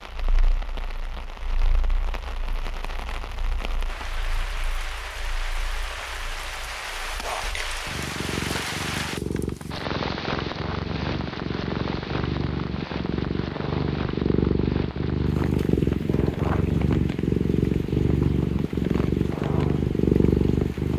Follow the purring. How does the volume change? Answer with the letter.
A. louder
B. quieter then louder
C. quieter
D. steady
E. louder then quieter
A.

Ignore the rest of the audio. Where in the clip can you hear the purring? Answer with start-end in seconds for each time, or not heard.
0.3-20.9.